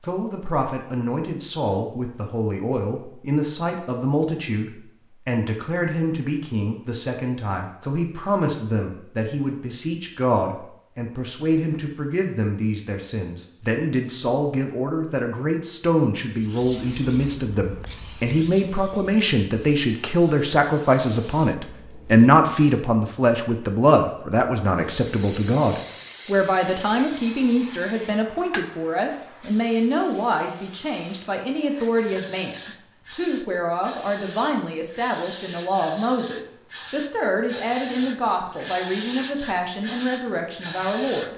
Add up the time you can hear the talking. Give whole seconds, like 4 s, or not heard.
41 s.